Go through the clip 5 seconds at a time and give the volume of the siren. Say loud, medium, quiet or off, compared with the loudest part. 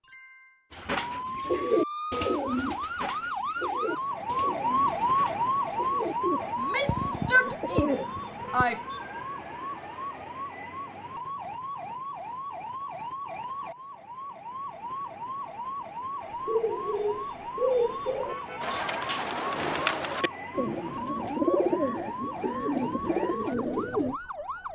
loud, loud, medium, medium, medium.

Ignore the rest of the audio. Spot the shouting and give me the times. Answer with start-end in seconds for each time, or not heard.
6.5-8.8.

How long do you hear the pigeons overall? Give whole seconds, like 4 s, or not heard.
16 s.